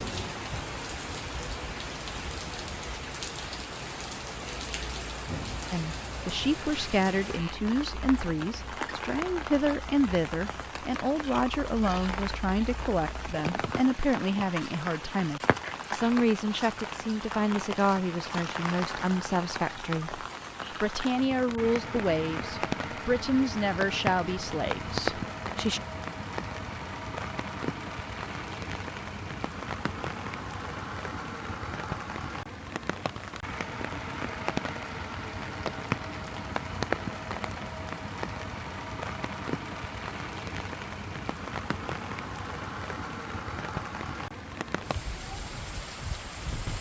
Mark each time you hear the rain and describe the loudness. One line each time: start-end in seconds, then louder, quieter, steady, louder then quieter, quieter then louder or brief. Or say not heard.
0.0-46.7 steady.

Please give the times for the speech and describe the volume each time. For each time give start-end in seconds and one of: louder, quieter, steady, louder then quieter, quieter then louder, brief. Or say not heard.
5.7-25.8 steady.